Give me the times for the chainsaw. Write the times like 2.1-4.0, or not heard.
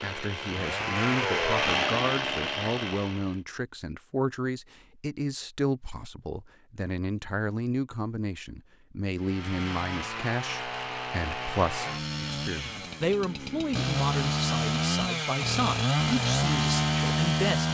0.0-3.4, 9.2-17.6.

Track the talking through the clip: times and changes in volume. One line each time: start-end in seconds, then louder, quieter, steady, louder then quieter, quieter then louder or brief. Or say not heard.
0.0-17.6 steady.